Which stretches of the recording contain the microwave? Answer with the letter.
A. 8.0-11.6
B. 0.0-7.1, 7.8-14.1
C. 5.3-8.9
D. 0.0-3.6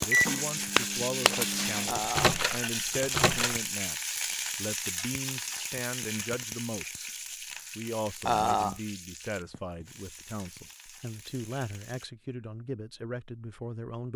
D.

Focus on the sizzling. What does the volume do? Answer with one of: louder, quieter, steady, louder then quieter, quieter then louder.
quieter.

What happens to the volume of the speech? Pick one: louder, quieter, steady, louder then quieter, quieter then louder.
steady.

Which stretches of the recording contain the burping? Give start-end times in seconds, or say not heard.
1.9-2.4, 8.2-8.8.